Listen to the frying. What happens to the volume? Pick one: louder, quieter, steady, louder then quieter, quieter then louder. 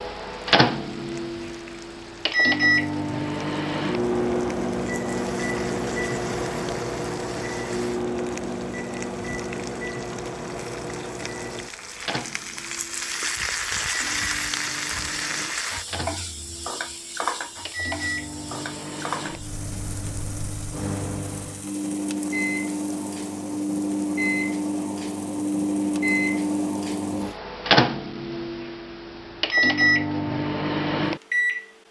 louder then quieter.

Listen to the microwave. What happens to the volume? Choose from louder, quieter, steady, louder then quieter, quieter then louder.
quieter then louder.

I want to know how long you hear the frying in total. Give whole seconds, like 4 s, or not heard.
27 s.